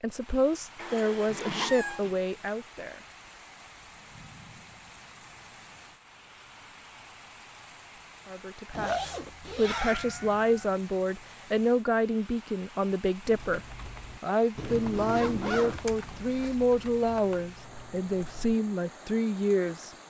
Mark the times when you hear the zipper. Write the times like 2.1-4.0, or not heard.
1.2-2.5, 8.7-10.2, 14.8-16.6.